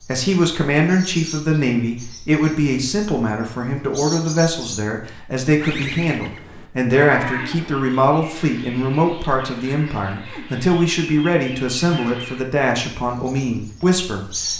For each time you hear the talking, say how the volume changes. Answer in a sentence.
You can hear the talking from 0.1 to 14.5 s, at a steady volume.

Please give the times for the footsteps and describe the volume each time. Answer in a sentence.
You can't hear the footsteps here.